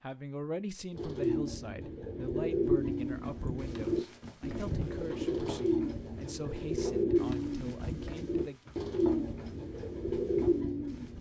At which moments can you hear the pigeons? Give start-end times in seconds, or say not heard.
0.9-11.1.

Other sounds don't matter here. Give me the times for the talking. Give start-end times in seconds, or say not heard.
0.0-8.6.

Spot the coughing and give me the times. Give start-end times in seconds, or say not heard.
not heard.